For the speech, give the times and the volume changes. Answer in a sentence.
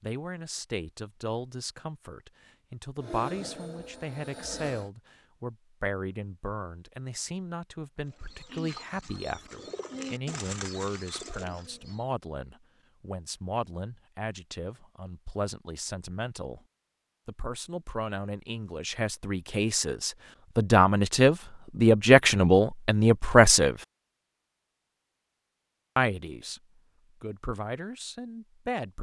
The speech can be heard from 0.0 to 16.6 s, at a steady volume; from 17.2 to 23.8 s, getting louder; and briefly from 25.9 to 28.9 s.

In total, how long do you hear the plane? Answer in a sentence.
The plane can be heard for 2 seconds in total.